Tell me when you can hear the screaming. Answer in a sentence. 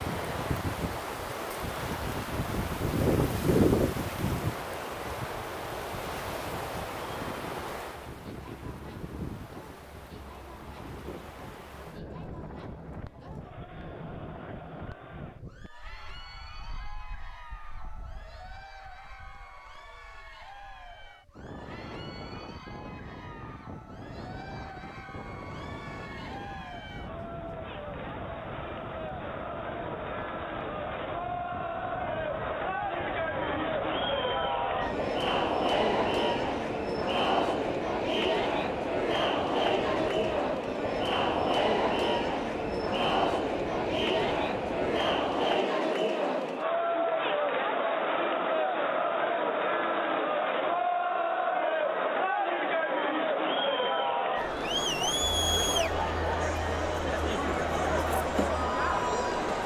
You can't hear the screaming here.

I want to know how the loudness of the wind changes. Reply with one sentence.
The loudness of the wind goes down.